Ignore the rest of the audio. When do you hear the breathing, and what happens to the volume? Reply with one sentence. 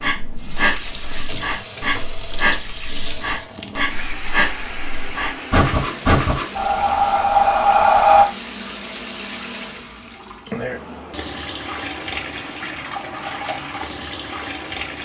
The breathing can be heard from 0.0 to 8.2 s, getting louder.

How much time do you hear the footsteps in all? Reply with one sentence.
The footsteps can't be heard in this clip.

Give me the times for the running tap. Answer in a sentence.
The running tap can be heard from 0.0 to 15.0 s.